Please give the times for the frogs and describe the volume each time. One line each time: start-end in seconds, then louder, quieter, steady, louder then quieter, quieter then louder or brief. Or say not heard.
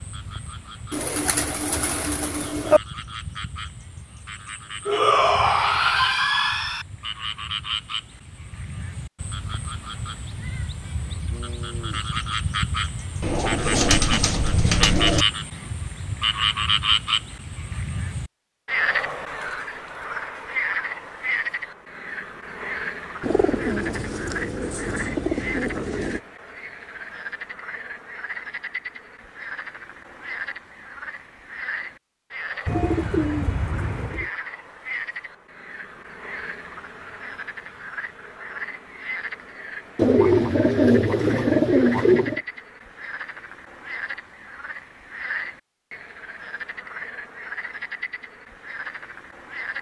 0.0-49.7 louder then quieter.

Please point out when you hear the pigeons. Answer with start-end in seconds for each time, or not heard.
0.9-2.8, 13.2-15.2, 23.2-26.2, 32.6-34.3, 40.0-42.4.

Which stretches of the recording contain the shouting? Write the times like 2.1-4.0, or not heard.
4.8-6.8.